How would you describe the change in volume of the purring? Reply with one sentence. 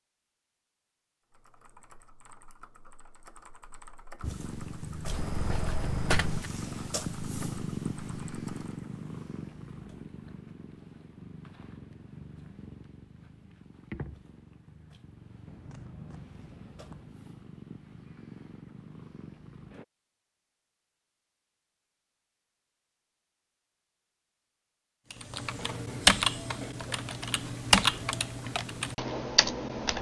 The loudness of the purring goes down.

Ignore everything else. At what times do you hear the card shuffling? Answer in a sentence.
You can hear the card shuffling from 5.0 to 6.5 s and from 15.4 to 17.1 s.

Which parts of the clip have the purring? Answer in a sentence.
The purring can be heard from 4.2 to 19.9 s.